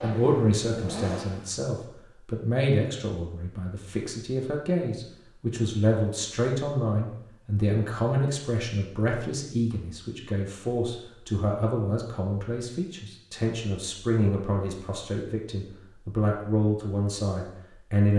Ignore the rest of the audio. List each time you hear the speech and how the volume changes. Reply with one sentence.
You can hear the speech from 0.0 to 18.1 s, at a steady volume.